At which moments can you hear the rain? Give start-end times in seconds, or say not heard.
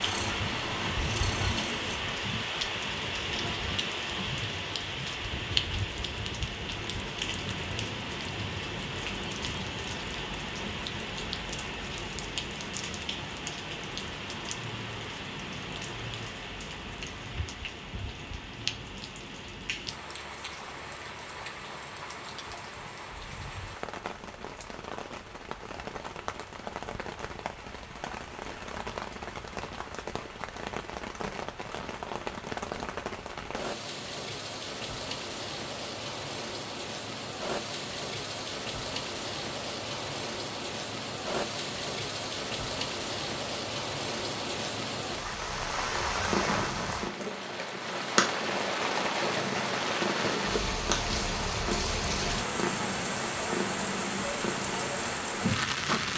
0.0-56.1.